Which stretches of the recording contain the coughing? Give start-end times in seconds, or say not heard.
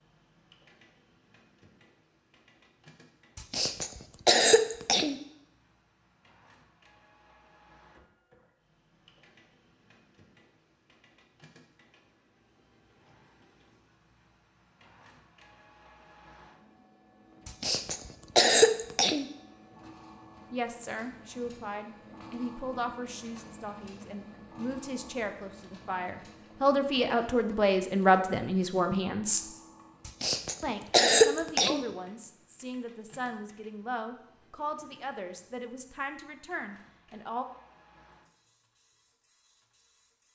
3.4-5.2, 17.4-19.2, 30.1-31.9.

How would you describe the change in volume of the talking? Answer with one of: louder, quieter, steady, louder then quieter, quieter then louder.
louder then quieter.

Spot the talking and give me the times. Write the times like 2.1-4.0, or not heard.
20.5-29.4, 30.6-37.5.